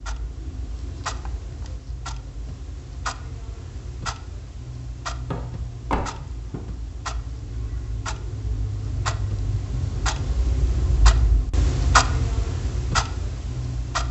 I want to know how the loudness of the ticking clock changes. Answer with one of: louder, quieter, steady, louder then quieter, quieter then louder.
louder.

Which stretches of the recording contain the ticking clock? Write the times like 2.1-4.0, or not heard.
0.0-14.0.